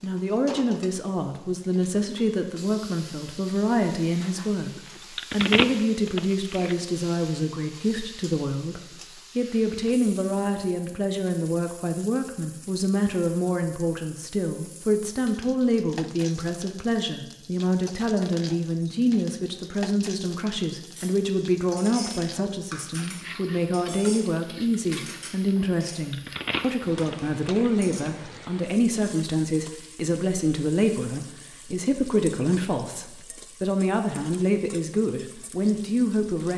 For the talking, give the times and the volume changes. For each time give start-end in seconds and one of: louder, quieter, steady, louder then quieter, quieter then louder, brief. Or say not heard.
0.0-36.5 steady.